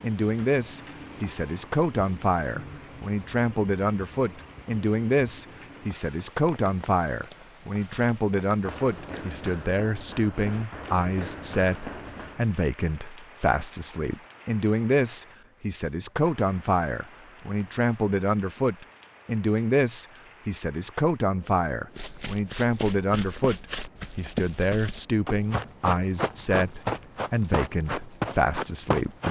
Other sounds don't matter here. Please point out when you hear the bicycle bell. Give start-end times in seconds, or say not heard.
not heard.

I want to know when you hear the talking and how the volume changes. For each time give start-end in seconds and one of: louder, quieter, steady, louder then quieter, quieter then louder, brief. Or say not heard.
0.0-29.2 steady.